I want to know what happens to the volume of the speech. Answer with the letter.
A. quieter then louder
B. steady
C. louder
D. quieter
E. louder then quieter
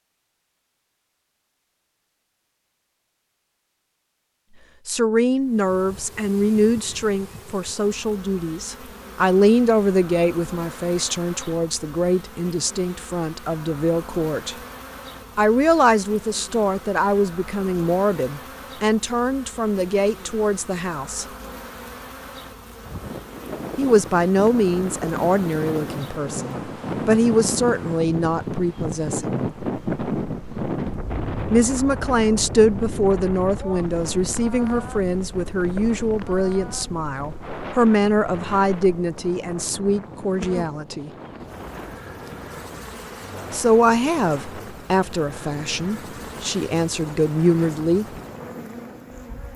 B.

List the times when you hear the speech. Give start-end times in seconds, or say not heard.
4.8-14.6, 15.3-21.2, 23.8-29.4, 31.5-41.1, 43.5-48.0.